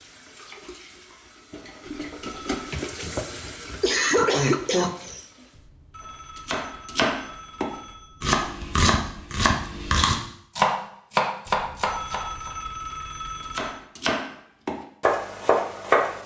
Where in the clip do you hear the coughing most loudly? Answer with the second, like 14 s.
4 s.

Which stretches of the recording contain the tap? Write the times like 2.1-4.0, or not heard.
0.0-5.7.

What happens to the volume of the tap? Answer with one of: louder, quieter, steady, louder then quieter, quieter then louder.
louder then quieter.